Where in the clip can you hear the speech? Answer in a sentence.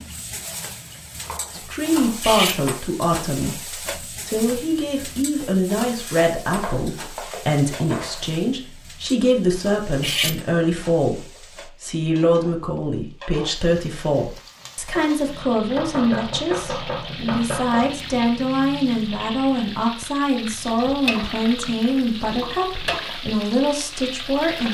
You can hear the speech from 1.5 to 11.2 s and from 11.8 to 24.6 s.